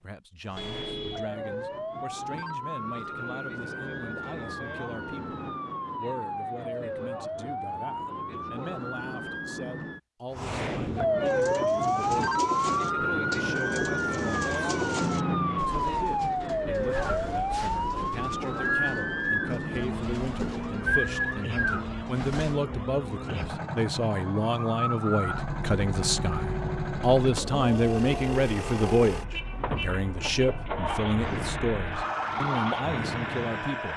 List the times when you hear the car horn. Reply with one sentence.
You can hear the car horn from 0.6 to 1.3 s, from 15.0 to 15.8 s and from 29.3 to 30.6 s.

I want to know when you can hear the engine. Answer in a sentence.
The engine can be heard from 23.2 to 33.9 s.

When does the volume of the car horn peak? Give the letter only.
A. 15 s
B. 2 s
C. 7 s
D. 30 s
A.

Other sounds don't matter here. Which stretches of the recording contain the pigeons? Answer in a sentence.
You can hear the pigeons from 11.2 to 22.6 s.